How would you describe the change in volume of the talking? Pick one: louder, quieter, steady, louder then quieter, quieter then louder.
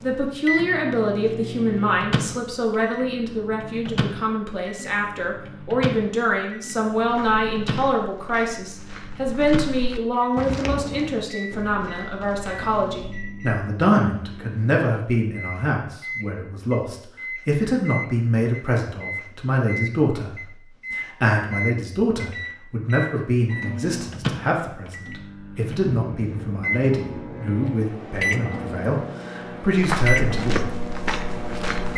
steady.